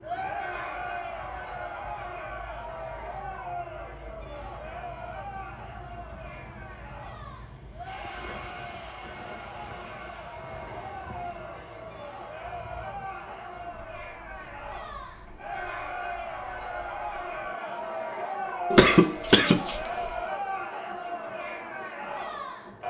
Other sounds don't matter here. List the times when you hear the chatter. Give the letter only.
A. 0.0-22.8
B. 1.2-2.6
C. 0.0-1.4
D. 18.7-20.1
A.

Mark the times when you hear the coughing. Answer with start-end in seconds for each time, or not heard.
18.7-20.1.